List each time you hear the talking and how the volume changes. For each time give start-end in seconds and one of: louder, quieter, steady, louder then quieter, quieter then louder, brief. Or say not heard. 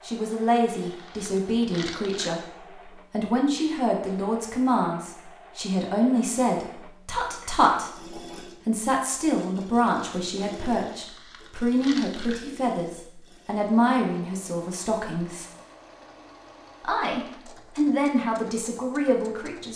0.1-15.4 steady
16.8-19.7 brief.